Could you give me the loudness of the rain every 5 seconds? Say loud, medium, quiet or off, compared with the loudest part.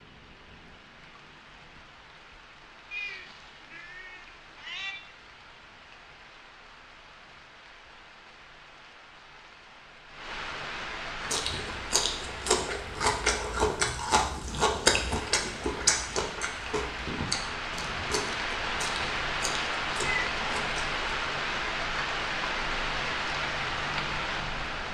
quiet, quiet, medium, loud, loud.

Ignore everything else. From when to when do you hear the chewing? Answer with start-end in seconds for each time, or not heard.
11.2-21.0.